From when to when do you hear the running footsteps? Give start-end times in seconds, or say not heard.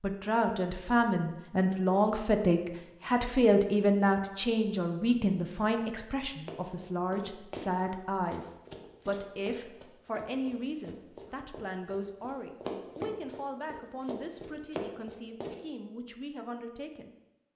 6.5-7.7, 8.3-15.6.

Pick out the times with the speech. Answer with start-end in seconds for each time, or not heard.
0.0-17.1.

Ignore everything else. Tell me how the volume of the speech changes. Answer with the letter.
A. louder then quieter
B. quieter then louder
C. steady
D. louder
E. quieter
E.